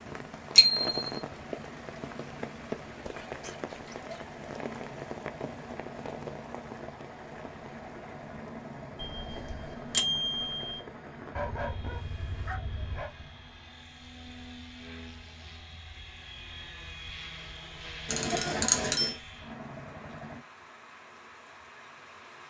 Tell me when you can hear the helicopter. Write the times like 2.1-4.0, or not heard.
0.0-20.4.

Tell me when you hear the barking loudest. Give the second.
12 s.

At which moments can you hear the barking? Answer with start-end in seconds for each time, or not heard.
11.3-13.1.